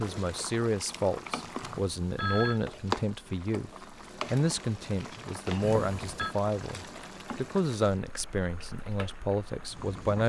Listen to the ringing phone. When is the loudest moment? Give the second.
2 s.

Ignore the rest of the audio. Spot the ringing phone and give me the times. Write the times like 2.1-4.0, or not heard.
1.6-2.6, 5.6-6.3.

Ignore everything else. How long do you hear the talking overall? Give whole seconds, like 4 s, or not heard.
10 s.